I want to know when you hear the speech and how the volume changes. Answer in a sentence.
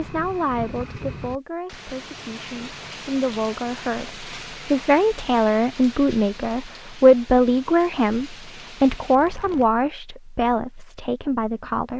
You can hear the speech from 0.0 to 11.9 s, getting louder then quieter.